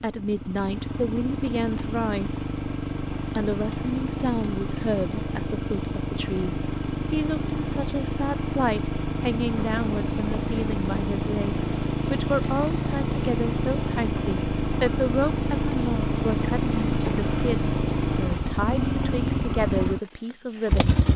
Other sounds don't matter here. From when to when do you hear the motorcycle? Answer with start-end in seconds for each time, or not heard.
0.0-21.1.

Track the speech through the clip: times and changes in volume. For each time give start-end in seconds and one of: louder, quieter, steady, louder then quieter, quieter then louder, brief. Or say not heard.
0.0-2.4 brief
3.4-21.0 steady.